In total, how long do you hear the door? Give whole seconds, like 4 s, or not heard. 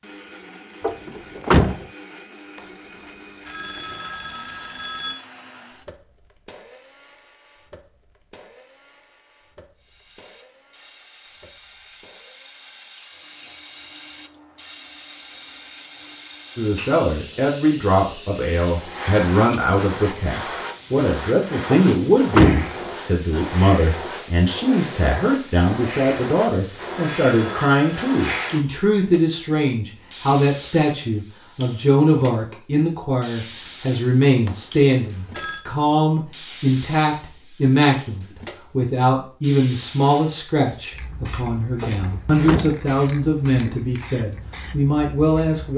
4 s.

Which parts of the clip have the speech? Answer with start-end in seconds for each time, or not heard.
16.6-45.7.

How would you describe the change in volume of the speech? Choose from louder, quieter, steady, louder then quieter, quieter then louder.
steady.